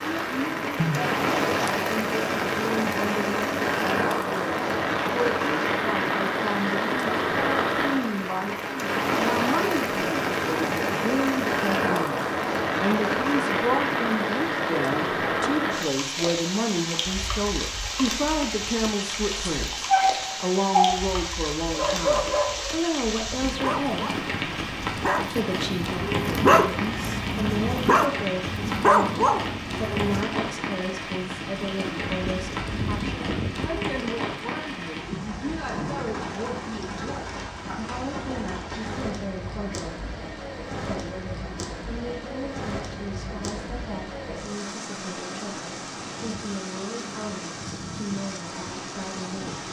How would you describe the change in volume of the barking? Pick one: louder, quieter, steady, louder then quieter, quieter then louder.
quieter then louder.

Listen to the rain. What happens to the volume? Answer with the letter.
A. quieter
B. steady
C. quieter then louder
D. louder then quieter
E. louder
A.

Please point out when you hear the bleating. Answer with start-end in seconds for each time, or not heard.
0.8-1.8, 32.0-33.9.